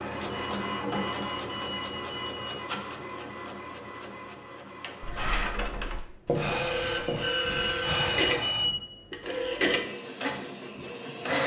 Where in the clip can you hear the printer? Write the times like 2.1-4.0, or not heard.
0.0-11.4.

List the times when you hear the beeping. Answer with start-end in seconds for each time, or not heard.
0.3-2.7, 7.0-8.8.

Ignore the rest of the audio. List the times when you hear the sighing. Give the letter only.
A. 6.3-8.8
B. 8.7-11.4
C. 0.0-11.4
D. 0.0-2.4
A.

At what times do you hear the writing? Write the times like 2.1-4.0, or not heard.
5.0-7.8.